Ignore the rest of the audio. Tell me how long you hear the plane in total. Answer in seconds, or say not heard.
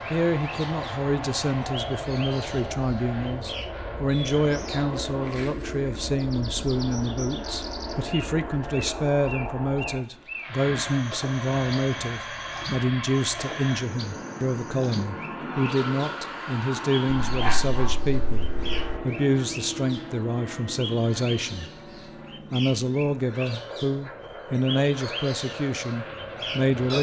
27 s.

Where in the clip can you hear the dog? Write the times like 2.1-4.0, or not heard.
17.2-19.0.